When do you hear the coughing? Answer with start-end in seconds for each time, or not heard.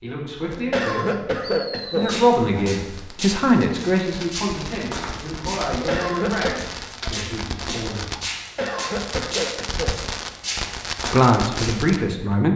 0.7-2.1, 5.8-6.6, 8.6-10.0.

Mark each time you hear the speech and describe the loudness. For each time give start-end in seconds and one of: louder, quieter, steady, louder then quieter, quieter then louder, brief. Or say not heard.
0.0-8.1 louder then quieter
11.1-12.5 brief.